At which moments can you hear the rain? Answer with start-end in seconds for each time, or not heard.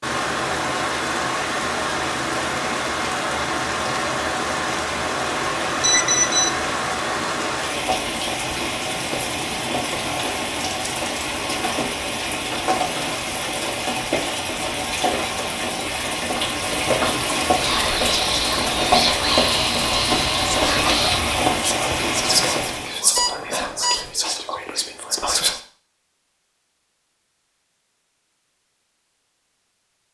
0.0-23.0.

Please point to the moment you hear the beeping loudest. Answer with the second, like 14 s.
6 s.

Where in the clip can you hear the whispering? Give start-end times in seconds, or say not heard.
17.6-25.6.